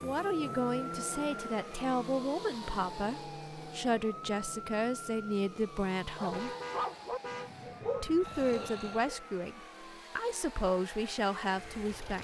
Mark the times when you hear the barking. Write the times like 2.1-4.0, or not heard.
6.2-9.2.